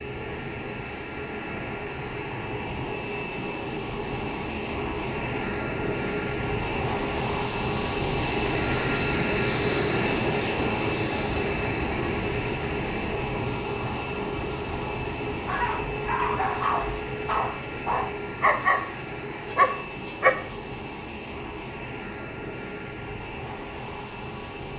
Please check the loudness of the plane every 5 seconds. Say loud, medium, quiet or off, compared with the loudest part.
medium, loud, loud, medium, medium.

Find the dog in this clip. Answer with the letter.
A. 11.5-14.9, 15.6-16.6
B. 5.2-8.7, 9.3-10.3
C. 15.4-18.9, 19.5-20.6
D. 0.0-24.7
C.